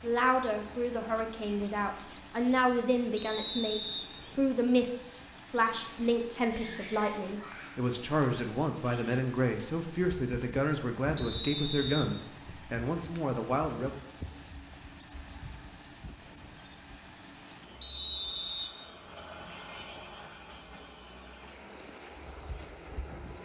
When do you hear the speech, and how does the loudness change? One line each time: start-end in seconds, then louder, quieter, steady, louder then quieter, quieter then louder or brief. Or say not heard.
0.0-14.0 steady.